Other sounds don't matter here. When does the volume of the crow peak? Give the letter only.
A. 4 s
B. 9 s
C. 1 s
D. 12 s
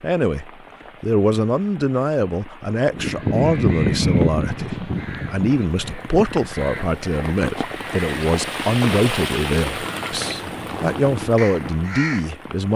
A.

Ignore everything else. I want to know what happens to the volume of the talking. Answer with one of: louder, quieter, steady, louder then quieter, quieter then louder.
steady.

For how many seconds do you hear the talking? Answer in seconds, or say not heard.
13 s.